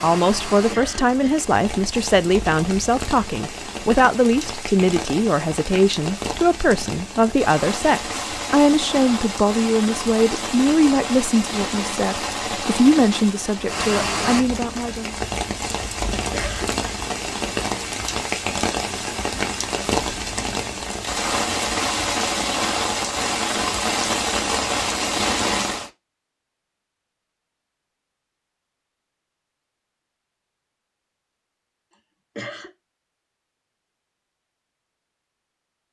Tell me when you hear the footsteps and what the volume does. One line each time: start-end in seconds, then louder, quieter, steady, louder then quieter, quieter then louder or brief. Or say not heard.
not heard.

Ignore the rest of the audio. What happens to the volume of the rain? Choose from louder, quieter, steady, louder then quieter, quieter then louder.
louder.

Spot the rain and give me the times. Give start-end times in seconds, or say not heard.
0.0-25.9.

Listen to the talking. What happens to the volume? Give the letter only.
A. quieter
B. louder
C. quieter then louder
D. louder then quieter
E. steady
E.